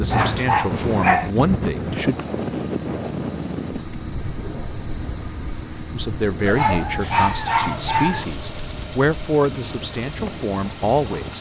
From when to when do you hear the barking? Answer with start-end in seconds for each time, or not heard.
0.1-1.3, 6.5-8.2.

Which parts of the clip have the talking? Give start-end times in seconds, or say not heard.
0.0-2.1, 5.9-11.3.